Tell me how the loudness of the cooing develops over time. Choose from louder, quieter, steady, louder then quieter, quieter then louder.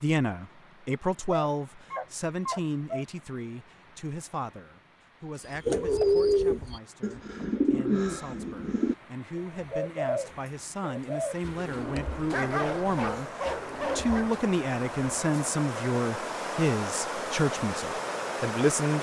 quieter.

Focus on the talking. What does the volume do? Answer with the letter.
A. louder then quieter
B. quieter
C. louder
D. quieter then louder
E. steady
D.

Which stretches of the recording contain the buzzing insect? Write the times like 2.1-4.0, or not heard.
not heard.